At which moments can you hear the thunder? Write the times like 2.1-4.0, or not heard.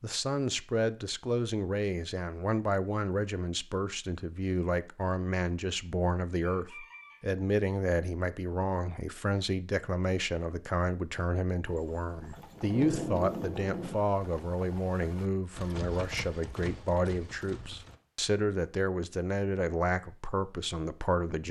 12.3-13.9.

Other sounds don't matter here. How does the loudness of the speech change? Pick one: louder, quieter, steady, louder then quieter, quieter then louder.
steady.